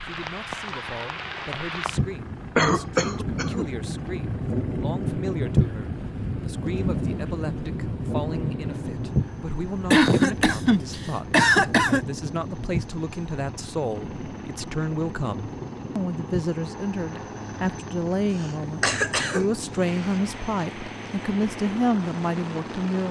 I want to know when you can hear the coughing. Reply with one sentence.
The coughing can be heard from 2.5 to 3.7 s, from 9.9 to 12.1 s and from 18.4 to 19.4 s.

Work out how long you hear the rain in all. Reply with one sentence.
You can hear the rain for 23 seconds altogether.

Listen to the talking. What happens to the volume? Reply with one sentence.
The loudness of the talking goes up.